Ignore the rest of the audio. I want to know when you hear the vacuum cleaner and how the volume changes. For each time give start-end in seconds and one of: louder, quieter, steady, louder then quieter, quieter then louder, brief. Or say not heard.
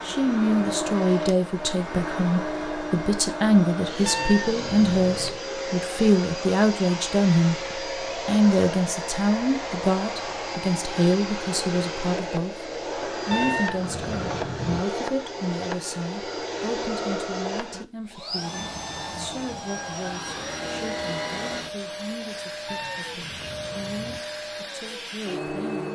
0.0-25.8 steady.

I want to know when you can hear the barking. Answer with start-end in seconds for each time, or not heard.
not heard.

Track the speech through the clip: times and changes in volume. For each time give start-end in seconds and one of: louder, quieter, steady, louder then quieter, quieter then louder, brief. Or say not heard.
0.0-25.8 quieter.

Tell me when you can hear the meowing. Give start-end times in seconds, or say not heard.
4.0-5.4, 13.3-14.8, 22.6-24.2.